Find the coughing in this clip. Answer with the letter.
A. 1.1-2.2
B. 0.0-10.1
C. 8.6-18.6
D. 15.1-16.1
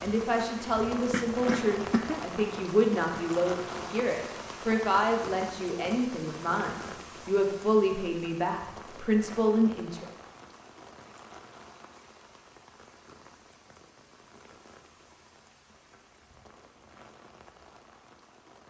A.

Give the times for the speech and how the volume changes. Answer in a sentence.
The speech can be heard from 0.0 to 10.1 s, at a steady volume.